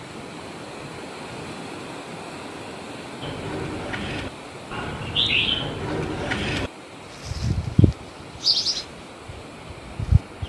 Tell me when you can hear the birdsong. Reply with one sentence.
You can hear the birdsong from 3.2 to 10.4 s.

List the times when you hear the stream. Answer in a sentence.
The stream can be heard from 0.0 to 10.4 s.